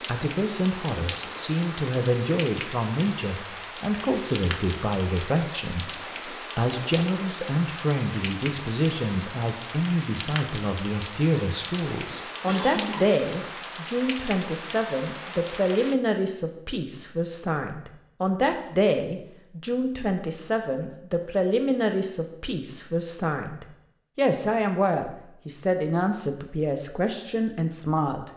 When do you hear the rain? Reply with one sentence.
You can hear the rain from 0.0 to 15.9 s.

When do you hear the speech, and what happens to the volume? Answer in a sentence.
The speech can be heard from 0.1 to 28.3 s, at a steady volume.